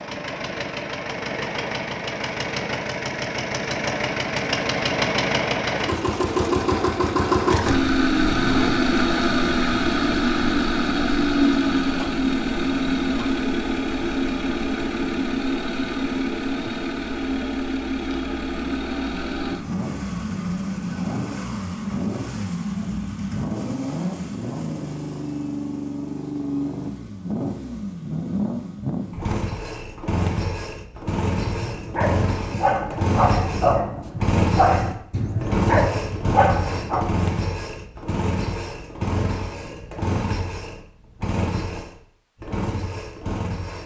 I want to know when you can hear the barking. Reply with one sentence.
You can hear the barking from 31.4 to 37.0 s.